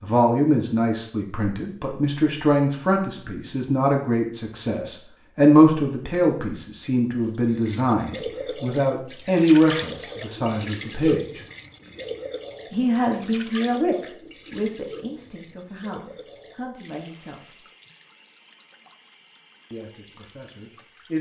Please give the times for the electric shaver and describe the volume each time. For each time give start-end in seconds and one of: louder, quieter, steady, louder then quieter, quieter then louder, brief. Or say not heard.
not heard.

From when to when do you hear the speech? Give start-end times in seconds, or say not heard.
0.0-11.4, 12.7-17.6, 19.7-21.1.